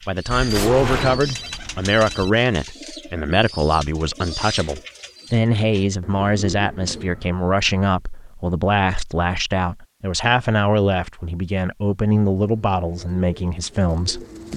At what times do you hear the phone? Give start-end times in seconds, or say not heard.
0.3-2.3.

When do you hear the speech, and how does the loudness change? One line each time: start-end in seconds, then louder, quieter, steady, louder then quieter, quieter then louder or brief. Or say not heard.
0.1-14.2 steady.